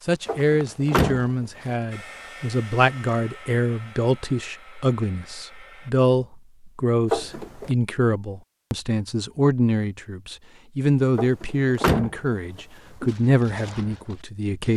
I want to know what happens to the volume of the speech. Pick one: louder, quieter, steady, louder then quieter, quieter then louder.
steady.